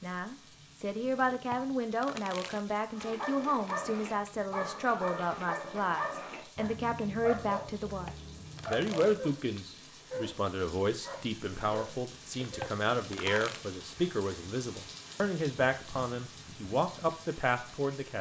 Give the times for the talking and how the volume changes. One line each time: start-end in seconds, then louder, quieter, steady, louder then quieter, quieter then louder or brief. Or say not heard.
0.0-18.1 steady.